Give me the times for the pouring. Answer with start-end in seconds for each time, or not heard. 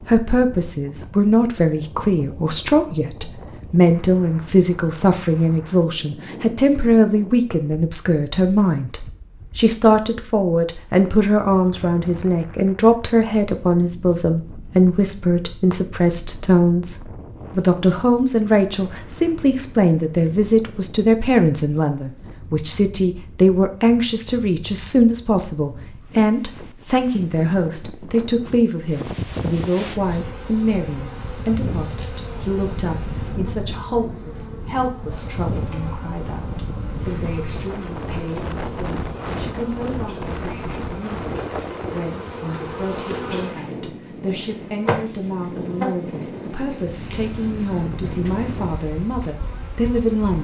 not heard.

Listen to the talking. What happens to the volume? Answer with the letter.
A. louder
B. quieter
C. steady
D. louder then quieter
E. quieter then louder
B.